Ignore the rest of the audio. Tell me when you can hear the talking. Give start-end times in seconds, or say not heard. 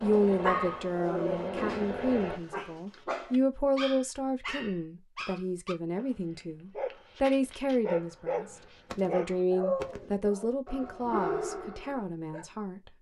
0.0-12.9.